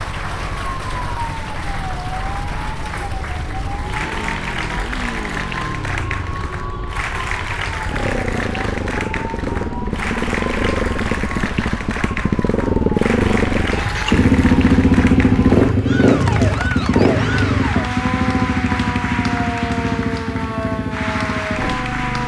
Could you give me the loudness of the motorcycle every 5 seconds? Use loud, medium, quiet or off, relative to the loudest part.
quiet, medium, loud, loud, medium.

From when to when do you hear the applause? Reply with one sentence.
You can hear the applause from 0.0 to 22.2 s.